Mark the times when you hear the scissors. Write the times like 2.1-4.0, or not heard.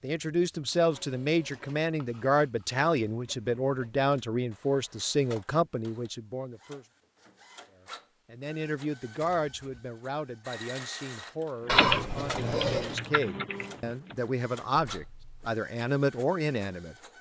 1.9-2.9, 9.2-9.8, 11.7-13.0.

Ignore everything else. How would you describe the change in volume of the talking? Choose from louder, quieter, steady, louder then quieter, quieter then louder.
quieter then louder.